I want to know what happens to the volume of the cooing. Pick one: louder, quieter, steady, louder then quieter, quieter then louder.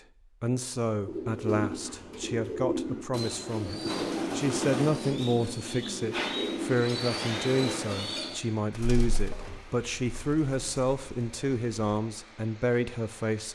quieter.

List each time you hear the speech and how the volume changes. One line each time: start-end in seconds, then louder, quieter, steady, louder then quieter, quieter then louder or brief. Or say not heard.
0.4-13.5 steady.